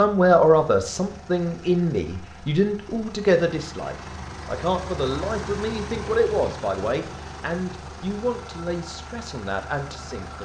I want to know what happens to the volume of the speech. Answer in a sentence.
The volume of the speech goes down.